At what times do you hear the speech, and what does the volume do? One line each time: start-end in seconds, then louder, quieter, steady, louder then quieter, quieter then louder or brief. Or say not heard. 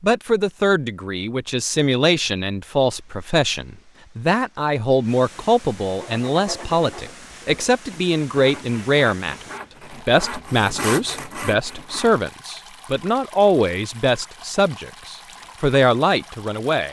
0.0-16.8 steady.